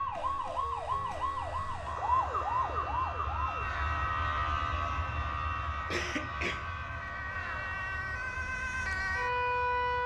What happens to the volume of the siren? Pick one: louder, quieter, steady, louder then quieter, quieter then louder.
quieter then louder.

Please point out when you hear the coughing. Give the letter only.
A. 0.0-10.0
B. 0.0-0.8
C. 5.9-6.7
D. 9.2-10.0
C.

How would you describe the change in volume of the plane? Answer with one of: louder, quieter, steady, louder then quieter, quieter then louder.
louder then quieter.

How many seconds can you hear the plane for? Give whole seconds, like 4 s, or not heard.
10 s.